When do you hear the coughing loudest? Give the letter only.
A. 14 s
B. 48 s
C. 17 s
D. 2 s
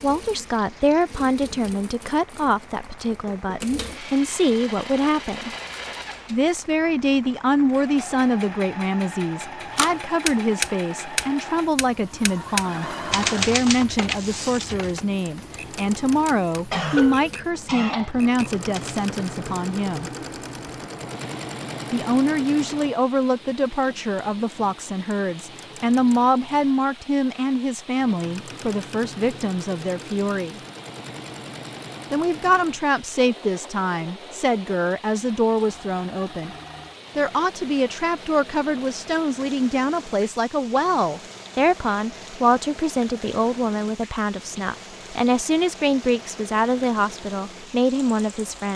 C.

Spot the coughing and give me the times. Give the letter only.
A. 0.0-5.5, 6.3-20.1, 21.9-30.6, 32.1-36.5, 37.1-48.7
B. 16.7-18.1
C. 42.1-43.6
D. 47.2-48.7
B.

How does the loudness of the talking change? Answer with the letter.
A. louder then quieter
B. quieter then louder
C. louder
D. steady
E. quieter
D.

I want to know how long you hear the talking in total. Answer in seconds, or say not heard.
44 s.